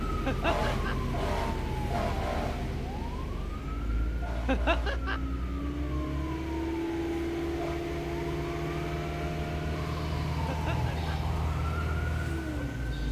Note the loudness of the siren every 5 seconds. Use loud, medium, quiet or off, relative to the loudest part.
loud, medium, loud.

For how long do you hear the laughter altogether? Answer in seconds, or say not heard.
2 s.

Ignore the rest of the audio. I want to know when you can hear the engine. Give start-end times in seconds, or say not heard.
0.0-13.0.